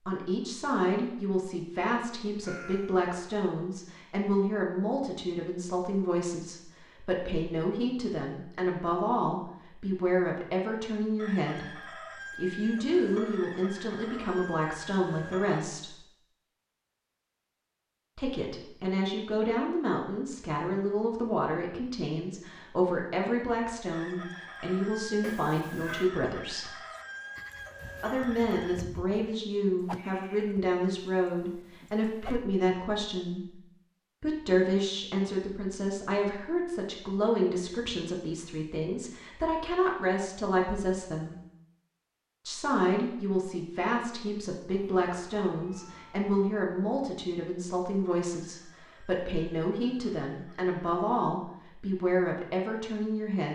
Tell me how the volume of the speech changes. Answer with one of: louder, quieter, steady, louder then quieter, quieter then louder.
steady.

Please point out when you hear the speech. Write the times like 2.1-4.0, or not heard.
0.0-16.0, 18.1-26.8, 28.0-33.5, 34.2-41.4, 42.5-53.4.